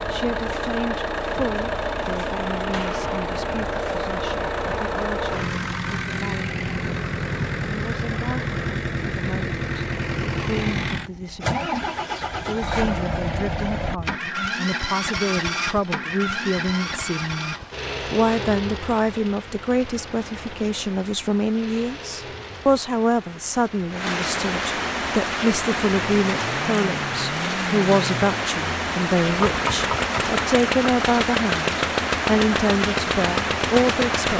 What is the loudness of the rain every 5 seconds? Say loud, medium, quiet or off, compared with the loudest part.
off, off, off, quiet, medium, loud, loud.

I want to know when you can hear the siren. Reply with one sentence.
The siren can't be heard in this clip.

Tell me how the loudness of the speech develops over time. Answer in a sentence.
The volume of the speech goes up.